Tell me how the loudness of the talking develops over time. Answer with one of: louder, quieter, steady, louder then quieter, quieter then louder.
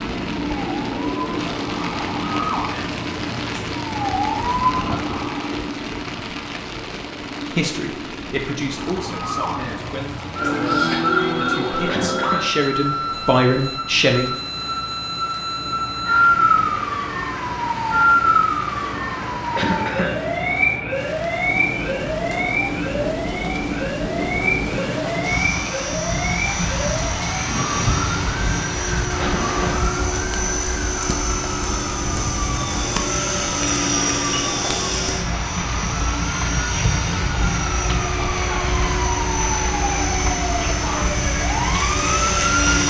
quieter then louder.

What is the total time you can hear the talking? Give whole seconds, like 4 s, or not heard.
7 s.